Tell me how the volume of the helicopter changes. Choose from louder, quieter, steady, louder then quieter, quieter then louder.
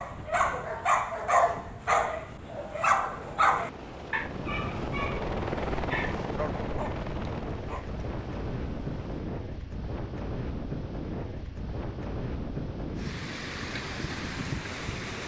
louder then quieter.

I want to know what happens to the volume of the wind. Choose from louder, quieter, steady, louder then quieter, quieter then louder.
louder.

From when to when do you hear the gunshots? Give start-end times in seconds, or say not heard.
not heard.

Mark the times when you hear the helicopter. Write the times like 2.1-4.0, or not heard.
3.0-9.2.